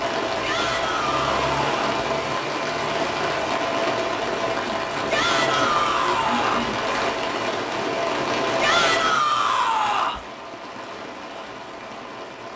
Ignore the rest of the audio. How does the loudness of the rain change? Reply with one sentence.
The loudness of the rain goes down.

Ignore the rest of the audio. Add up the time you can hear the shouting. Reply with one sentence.
You can hear the shouting for 5 seconds altogether.